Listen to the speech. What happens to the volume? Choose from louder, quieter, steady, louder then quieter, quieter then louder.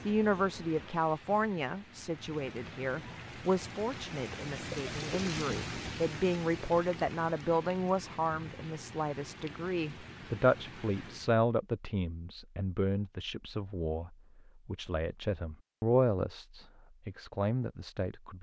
steady.